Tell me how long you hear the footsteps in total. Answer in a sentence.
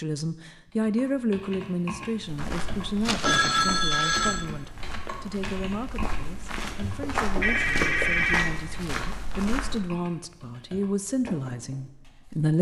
The footsteps can be heard for 8 seconds in total.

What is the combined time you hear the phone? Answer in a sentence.
The phone can be heard for 3 seconds in total.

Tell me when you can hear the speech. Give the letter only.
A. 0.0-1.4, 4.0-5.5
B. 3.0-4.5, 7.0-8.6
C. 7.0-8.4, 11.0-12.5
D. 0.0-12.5
D.